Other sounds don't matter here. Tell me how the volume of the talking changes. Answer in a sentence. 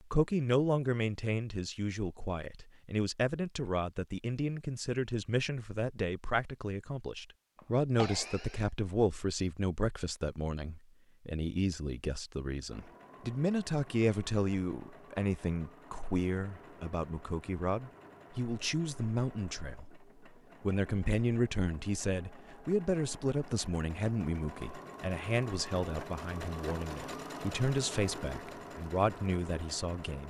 The loudness of the talking stays about the same.